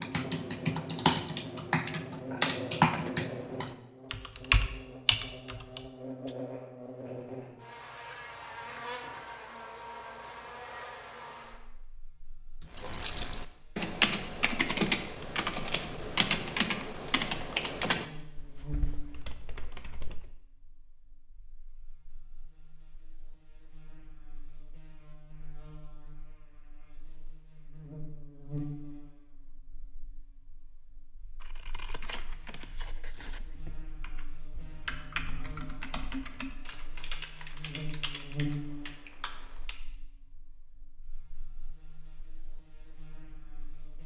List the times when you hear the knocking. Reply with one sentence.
You can't hear the knocking here.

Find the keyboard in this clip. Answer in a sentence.
The keyboard can be heard from 0.0 to 6.3 s, from 12.6 to 20.2 s and from 31.5 to 39.8 s.